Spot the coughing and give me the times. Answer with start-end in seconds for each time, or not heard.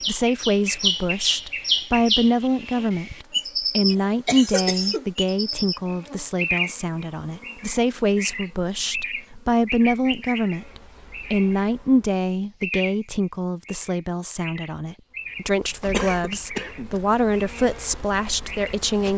3.9-5.0, 15.9-16.9.